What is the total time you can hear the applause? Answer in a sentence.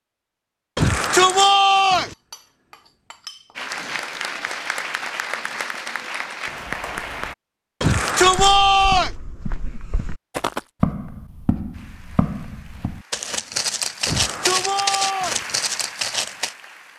You can hear the applause for 9 seconds altogether.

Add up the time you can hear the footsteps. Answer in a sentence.
The footsteps can be heard for 8 seconds in total.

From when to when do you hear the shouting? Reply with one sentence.
The shouting can be heard from 0.8 to 2.1 s, from 7.8 to 9.1 s and from 14.1 to 15.4 s.